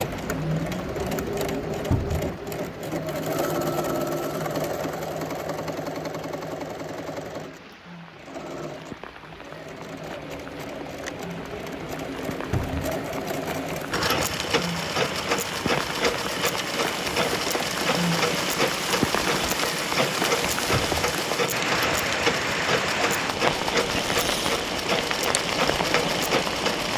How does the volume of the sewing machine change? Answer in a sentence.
The volume of the sewing machine goes down, then up.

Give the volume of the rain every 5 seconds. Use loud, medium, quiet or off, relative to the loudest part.
quiet, quiet, medium, loud, loud, loud.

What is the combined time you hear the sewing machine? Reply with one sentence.
You can hear the sewing machine for 27 seconds altogether.